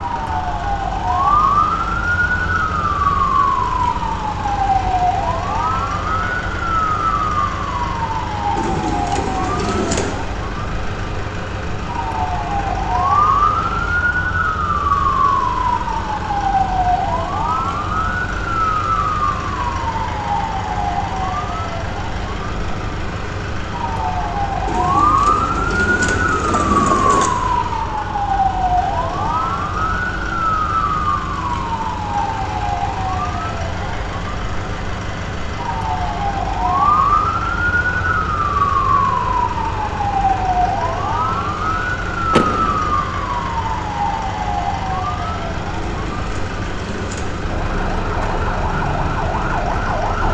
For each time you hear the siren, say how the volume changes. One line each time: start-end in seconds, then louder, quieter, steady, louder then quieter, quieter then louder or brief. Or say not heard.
0.0-50.2 steady.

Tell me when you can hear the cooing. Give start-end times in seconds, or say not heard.
8.6-10.2, 24.6-27.3, 45.8-47.5.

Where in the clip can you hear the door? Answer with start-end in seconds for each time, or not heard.
42.3-43.1.